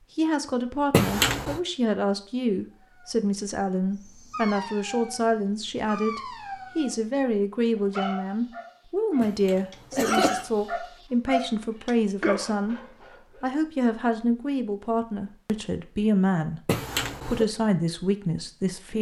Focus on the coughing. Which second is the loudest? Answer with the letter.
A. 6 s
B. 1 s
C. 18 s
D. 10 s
B.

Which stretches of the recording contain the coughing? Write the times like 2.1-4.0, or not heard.
0.9-1.6, 9.2-10.4, 16.6-17.4.